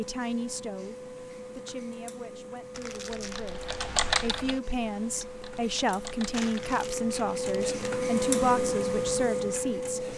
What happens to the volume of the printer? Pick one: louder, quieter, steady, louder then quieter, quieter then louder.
louder.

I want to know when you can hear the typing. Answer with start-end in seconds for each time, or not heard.
3.1-6.7.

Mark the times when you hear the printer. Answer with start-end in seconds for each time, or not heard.
0.0-10.1.